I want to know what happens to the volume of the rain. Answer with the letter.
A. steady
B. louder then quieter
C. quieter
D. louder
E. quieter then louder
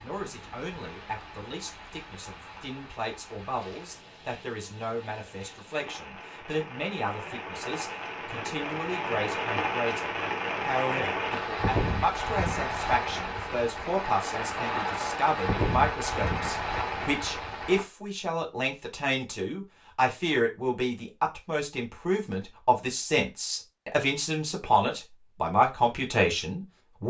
D.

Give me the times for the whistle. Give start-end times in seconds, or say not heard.
not heard.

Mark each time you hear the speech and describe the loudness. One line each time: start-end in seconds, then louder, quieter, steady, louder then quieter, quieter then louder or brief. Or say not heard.
0.0-27.0 louder.